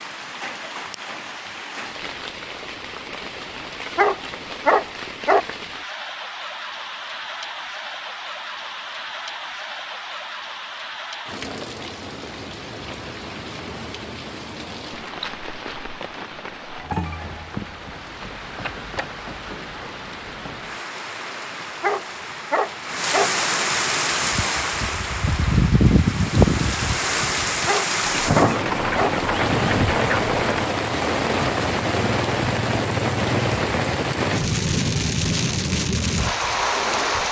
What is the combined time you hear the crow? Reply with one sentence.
The crow can't be heard in this clip.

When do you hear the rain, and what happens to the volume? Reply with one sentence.
The rain can be heard from 0.0 to 37.2 s, getting louder.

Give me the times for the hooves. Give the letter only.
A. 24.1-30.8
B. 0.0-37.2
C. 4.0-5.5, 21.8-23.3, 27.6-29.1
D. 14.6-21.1
A.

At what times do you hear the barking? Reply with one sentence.
The barking can be heard from 4.0 to 5.5 s, from 21.8 to 23.3 s and from 27.6 to 29.1 s.